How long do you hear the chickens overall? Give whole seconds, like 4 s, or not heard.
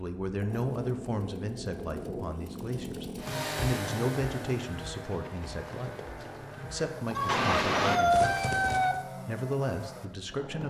2 s.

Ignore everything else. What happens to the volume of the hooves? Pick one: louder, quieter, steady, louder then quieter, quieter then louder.
louder then quieter.